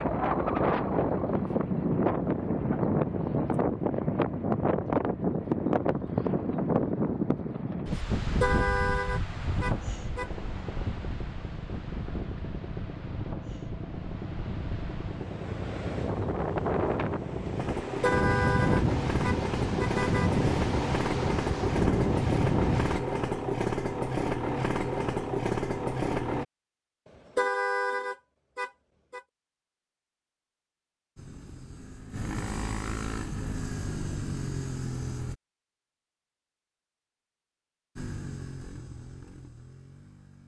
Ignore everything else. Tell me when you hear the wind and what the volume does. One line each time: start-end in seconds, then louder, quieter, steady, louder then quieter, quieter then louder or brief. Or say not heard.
0.0-23.0 quieter then louder.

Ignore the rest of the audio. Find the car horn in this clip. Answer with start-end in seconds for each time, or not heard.
8.2-10.3, 18.0-20.4, 27.1-29.2.